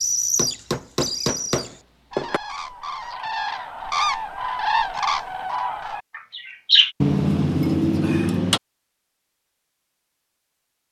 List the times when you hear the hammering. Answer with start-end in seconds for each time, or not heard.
0.3-2.4, 7.0-8.6.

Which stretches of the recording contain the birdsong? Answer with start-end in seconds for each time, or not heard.
0.0-7.0.